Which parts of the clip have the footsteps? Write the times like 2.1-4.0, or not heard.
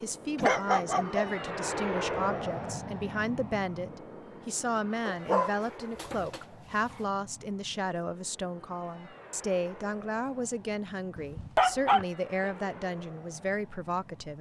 not heard.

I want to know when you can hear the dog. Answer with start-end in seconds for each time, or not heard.
0.3-1.4, 5.0-7.0, 11.2-12.5.